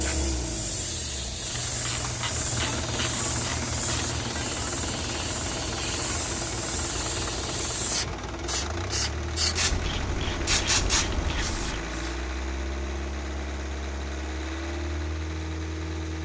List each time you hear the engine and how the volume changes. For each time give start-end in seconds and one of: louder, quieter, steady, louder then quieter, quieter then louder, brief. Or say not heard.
0.0-16.1 steady.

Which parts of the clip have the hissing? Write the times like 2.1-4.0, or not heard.
0.0-12.2.